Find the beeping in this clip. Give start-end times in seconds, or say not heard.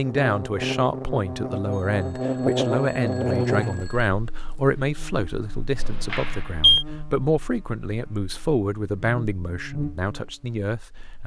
1.7-4.1, 5.8-6.8.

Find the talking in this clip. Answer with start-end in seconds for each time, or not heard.
0.0-11.2.